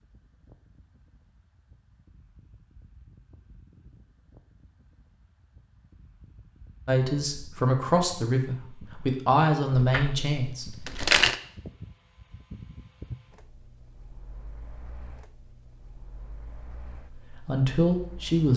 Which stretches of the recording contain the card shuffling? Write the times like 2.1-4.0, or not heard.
9.8-11.3.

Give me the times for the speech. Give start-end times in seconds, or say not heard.
6.8-10.8, 17.1-18.5.